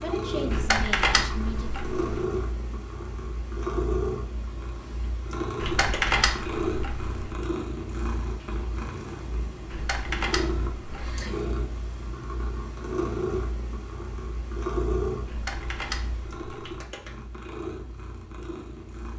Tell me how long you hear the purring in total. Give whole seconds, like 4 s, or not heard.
19 s.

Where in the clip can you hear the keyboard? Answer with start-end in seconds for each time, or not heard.
0.5-2.2, 5.6-7.3, 9.7-11.2, 15.2-16.8.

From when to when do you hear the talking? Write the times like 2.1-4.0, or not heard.
0.0-1.8.